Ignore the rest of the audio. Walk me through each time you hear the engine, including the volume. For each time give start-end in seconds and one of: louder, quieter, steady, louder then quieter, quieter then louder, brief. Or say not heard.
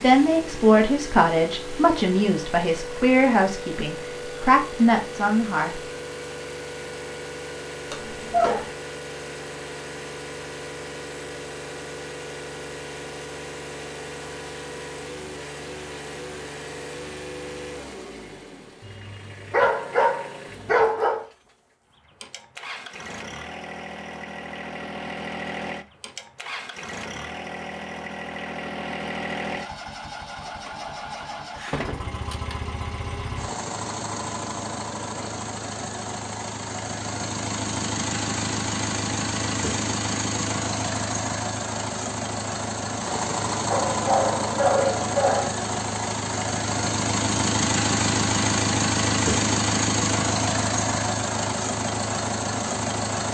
0.0-53.2 louder.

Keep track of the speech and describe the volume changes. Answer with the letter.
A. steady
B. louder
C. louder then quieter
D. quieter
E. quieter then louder
E.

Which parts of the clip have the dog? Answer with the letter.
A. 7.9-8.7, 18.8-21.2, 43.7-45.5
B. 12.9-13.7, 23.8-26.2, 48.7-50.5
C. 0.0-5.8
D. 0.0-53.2
A.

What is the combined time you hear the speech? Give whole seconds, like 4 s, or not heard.
6 s.